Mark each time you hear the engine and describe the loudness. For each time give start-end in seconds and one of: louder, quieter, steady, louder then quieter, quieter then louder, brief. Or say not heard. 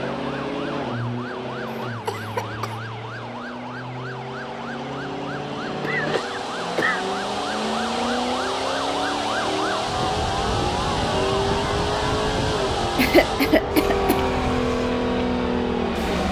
0.0-16.2 louder.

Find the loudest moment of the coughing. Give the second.
13 s.